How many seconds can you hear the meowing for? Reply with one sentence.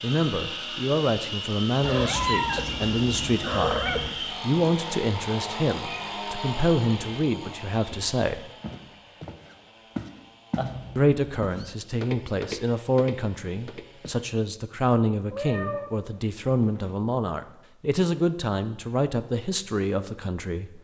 The meowing can be heard for 5 seconds in total.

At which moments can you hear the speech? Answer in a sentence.
The speech can be heard from 0.0 to 8.4 s and from 10.9 to 20.8 s.